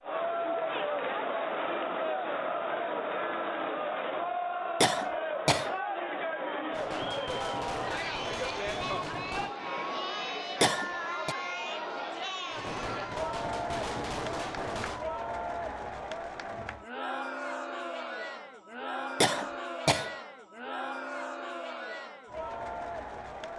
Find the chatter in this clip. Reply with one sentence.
The chatter can be heard from 0.0 to 23.5 s.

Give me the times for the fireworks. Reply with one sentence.
The fireworks can be heard from 6.7 to 9.6 s and from 12.5 to 15.1 s.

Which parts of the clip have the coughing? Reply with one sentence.
You can hear the coughing from 4.8 to 5.7 s, from 10.6 to 11.3 s and from 19.2 to 20.1 s.